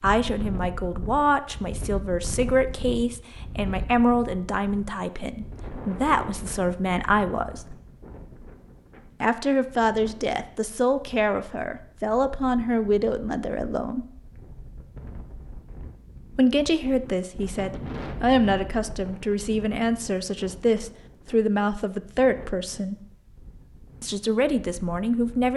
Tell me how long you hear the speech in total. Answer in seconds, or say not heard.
21 s.